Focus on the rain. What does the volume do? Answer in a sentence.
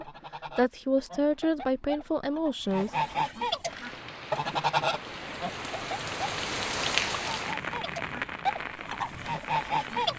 The volume of the rain goes up, then down.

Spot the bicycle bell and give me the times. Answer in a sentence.
The bicycle bell can't be heard in this clip.